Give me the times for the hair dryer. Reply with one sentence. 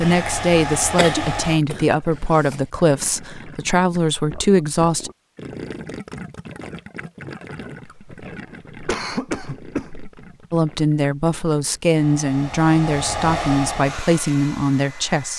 You can hear the hair dryer from 0.0 to 1.6 s and from 11.9 to 15.3 s.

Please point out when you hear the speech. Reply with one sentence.
You can hear the speech from 0.0 to 5.1 s and from 10.5 to 15.3 s.